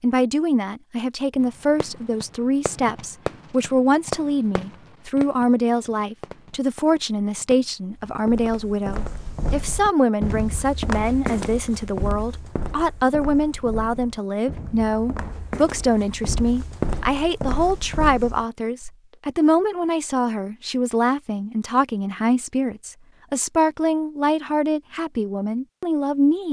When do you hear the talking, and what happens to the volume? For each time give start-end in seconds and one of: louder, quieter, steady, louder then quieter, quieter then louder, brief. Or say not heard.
0.0-26.4 steady.